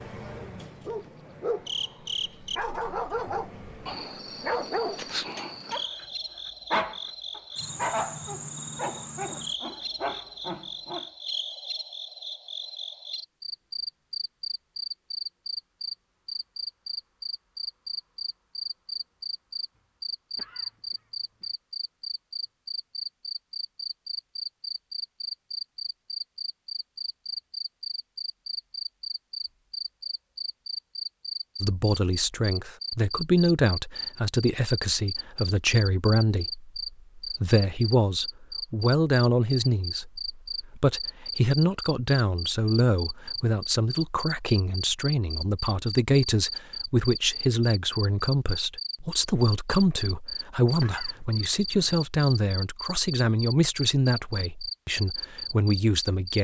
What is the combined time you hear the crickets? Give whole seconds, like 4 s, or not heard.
56 s.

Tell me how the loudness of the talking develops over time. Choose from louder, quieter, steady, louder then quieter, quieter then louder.
steady.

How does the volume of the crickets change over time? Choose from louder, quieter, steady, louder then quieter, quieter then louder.
steady.